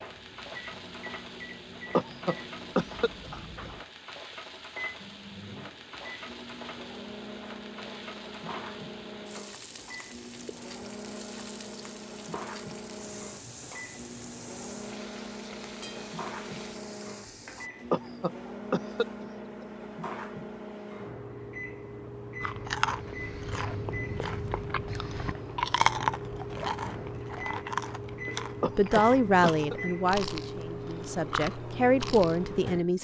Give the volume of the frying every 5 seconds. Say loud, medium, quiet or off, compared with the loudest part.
loud, loud, loud, loud, off, off, off.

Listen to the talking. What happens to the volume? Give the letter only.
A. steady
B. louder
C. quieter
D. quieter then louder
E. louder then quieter
D.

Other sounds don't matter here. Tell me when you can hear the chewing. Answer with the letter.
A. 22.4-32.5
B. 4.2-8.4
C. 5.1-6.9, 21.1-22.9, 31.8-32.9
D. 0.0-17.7
A.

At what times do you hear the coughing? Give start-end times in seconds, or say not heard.
1.9-3.7, 17.9-19.6, 28.6-29.8.